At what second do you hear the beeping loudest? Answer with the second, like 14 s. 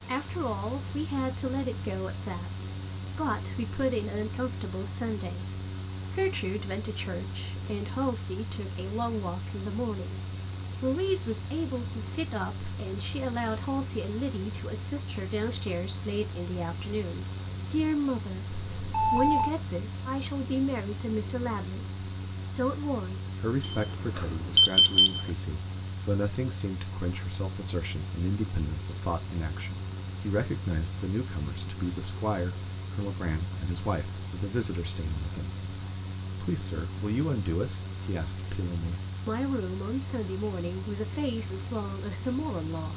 25 s.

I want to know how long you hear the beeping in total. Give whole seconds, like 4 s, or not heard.
3 s.